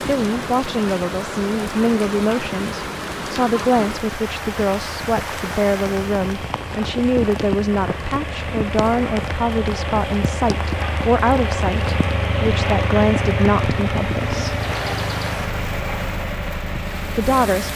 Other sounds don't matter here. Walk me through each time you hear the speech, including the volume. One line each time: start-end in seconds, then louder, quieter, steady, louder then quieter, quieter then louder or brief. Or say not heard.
0.1-14.6 steady
17.1-17.7 brief.